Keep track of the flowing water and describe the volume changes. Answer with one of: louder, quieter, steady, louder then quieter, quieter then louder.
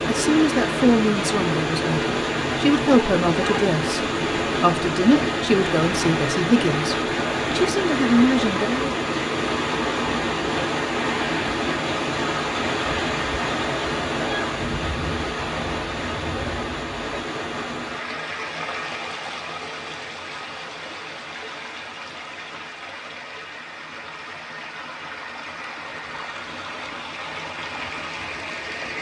quieter.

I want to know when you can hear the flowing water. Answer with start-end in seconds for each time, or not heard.
0.0-28.9.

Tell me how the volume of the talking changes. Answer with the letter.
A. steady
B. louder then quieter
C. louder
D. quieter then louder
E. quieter
A.